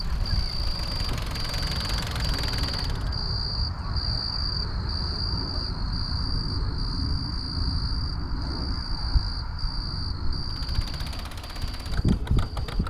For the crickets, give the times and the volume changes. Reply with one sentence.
The crickets can be heard from 0.0 to 12.8 s, at a steady volume.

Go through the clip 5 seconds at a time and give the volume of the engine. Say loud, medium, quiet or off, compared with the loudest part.
loud, off, loud.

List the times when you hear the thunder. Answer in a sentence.
The thunder can't be heard in this clip.